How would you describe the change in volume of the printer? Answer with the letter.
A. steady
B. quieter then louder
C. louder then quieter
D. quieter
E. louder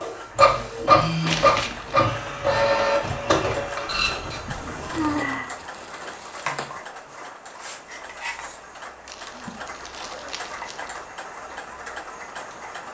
D.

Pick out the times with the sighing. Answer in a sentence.
The sighing can be heard from 0.3 to 1.6 s, from 4.5 to 5.5 s and from 9.2 to 9.8 s.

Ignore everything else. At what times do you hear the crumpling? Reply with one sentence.
The crumpling can be heard from 1.2 to 1.9 s, from 4.8 to 6.8 s and from 9.1 to 11.0 s.